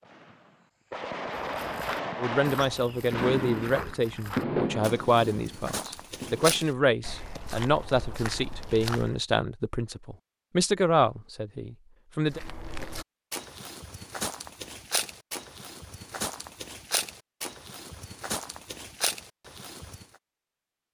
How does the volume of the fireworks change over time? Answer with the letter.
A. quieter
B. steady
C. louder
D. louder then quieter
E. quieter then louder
D.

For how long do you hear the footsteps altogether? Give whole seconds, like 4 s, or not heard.
16 s.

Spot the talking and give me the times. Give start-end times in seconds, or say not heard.
2.2-12.4.